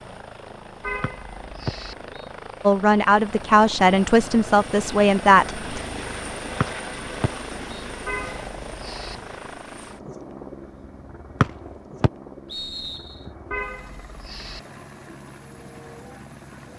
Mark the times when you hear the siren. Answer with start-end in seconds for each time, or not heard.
not heard.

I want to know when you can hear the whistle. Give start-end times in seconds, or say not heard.
1.0-2.3, 6.6-7.8, 11.4-13.2.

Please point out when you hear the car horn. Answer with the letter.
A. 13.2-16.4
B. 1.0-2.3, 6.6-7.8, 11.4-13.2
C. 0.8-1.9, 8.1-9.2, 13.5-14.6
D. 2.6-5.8
C.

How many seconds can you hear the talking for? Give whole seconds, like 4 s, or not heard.
3 s.